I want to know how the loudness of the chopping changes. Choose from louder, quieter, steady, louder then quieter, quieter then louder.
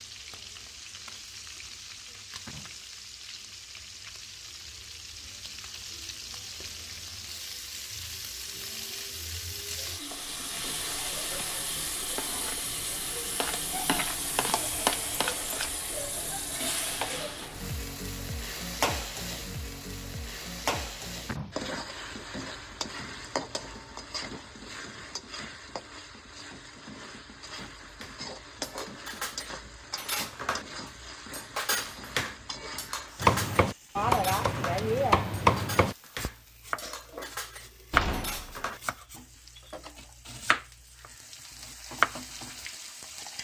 quieter then louder.